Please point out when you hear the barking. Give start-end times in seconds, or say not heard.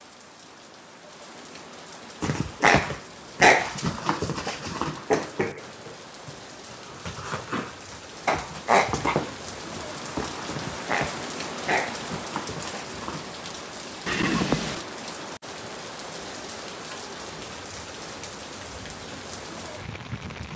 2.2-5.6, 6.2-13.2.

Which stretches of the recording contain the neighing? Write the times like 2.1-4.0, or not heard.
14.1-14.8.